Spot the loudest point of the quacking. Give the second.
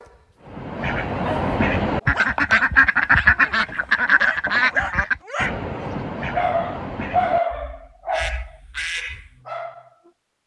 3 s.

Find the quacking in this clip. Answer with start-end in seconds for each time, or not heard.
0.4-9.3.